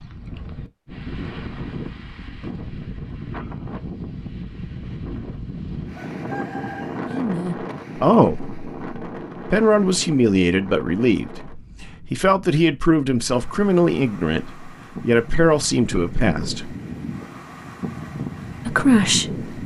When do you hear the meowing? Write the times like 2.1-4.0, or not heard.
not heard.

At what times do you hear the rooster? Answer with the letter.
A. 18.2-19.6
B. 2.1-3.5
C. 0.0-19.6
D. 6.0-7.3
D.